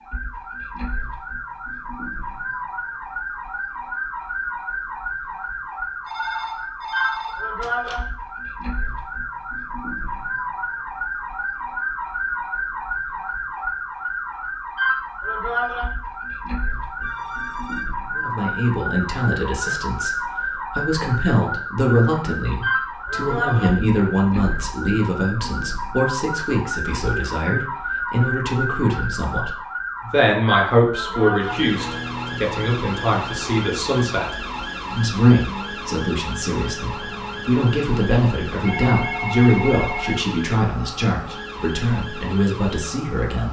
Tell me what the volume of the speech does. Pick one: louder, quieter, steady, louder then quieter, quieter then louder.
steady.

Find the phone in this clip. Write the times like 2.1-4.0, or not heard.
6.0-8.0, 17.0-17.9, 38.6-40.1.